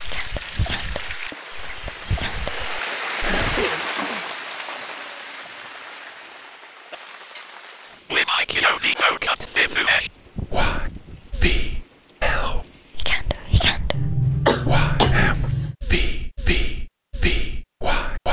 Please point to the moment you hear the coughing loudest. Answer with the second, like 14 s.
14 s.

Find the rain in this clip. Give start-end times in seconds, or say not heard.
0.0-13.5.